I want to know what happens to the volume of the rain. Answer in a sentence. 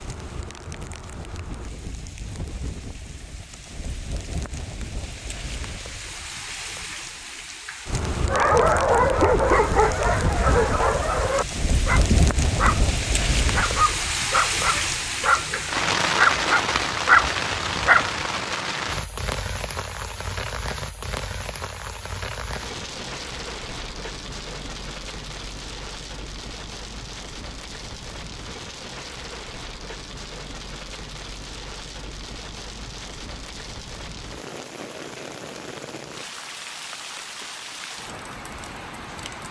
The loudness of the rain goes up, then down.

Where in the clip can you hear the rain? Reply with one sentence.
The rain can be heard from 0.0 to 39.4 s.